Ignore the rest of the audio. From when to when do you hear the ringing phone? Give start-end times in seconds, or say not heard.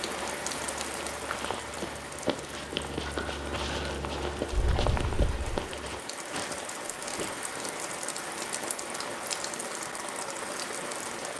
not heard.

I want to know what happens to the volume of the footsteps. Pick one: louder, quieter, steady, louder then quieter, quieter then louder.
louder then quieter.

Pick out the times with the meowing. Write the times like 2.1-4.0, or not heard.
4.5-5.6.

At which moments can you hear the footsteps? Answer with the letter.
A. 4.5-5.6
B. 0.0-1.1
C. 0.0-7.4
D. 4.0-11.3
C.